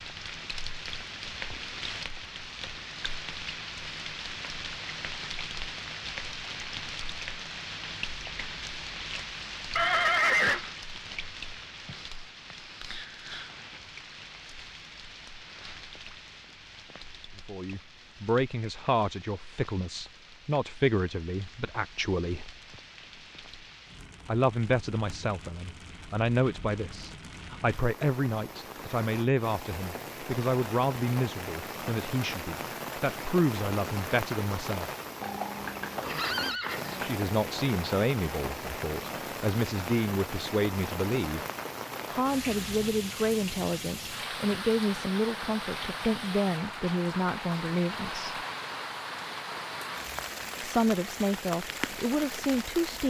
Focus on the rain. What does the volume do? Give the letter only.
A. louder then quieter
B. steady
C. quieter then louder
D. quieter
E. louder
C.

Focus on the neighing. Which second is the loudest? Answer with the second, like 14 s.
10 s.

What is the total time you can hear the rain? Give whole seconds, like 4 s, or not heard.
53 s.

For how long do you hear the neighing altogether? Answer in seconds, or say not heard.
3 s.